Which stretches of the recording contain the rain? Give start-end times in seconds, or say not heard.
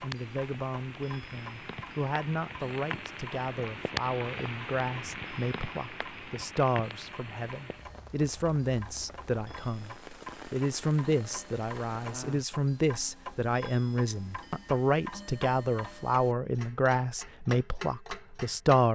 0.0-12.4.